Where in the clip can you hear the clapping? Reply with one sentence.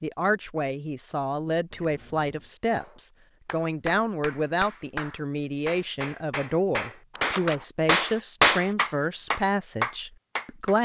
The clapping can be heard from 2.7 to 10.7 s.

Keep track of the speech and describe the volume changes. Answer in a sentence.
The volume of the speech stays about the same.